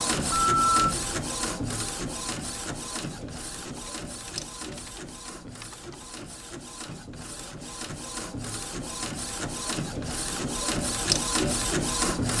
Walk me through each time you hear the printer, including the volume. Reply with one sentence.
The printer can be heard from 0.0 to 12.3 s, getting quieter then louder.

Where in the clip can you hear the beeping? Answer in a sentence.
You can hear the beeping from 0.1 to 0.9 s.